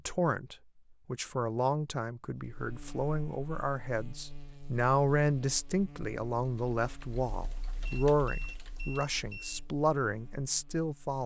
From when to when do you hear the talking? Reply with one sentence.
You can hear the talking from 0.1 to 11.2 s.